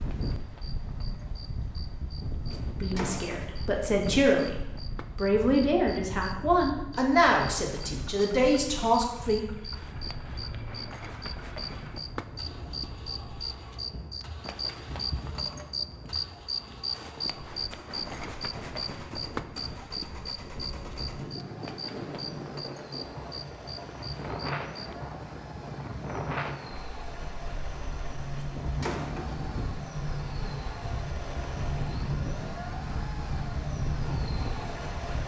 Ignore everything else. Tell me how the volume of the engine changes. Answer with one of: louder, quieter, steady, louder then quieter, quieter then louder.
louder.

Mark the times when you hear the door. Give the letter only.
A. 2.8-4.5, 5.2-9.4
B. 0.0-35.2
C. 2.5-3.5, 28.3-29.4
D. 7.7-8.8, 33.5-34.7
C.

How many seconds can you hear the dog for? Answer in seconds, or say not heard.
not heard.